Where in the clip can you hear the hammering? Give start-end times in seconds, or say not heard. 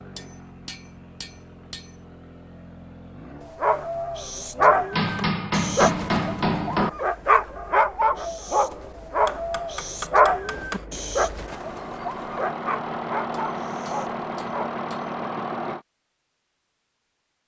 0.1-1.9, 4.9-6.9, 9.2-10.8, 13.3-15.1.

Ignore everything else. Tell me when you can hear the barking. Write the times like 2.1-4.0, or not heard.
3.5-14.7.